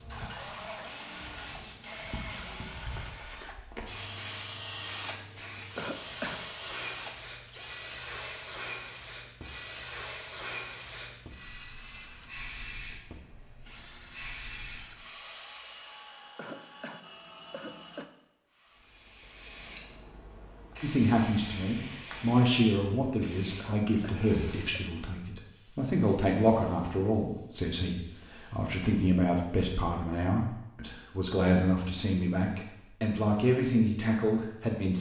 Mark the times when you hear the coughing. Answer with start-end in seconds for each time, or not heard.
5.8-6.5, 16.4-18.1, 23.6-24.9.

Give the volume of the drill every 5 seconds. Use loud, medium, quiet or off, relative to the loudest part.
loud, loud, medium, medium, off, off, off.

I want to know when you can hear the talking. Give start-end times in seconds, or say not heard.
20.8-34.9.